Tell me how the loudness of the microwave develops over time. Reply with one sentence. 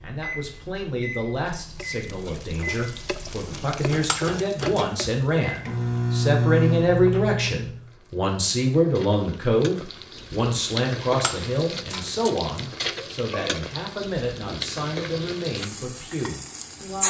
The volume of the microwave goes up.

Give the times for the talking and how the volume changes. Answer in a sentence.
You can hear the talking from 0.0 to 17.0 s, getting louder then quieter.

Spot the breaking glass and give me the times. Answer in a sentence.
The breaking glass can be heard from 4.0 to 4.8 s and from 11.2 to 12.1 s.